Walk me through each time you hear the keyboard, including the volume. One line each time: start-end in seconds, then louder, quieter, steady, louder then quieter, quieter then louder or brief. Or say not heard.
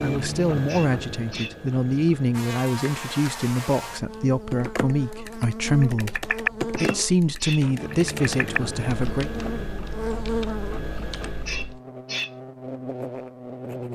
4.5-11.8 louder then quieter.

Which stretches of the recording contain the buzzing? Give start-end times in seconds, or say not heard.
2.3-13.8.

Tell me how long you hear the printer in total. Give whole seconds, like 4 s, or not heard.
7 s.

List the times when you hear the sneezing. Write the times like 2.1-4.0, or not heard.
0.7-1.6, 6.8-7.7, 11.4-12.3.